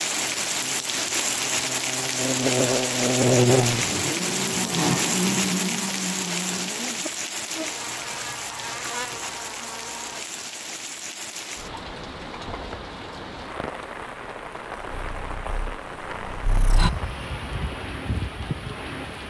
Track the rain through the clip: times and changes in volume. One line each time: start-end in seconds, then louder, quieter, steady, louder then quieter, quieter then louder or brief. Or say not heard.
0.0-19.2 quieter.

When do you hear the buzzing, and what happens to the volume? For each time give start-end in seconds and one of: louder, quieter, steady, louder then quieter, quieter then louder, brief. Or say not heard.
0.1-10.2 louder then quieter.